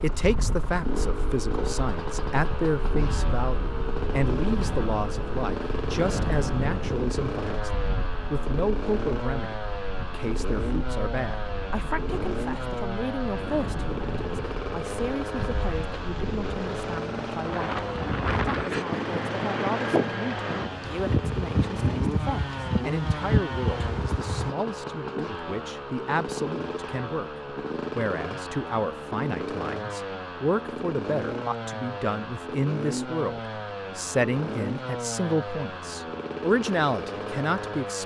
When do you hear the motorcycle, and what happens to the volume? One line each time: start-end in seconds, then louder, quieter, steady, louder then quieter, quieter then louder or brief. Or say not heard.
0.0-38.0 steady.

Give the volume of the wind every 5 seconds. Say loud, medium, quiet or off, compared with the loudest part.
medium, medium, medium, loud, loud, off, off, off.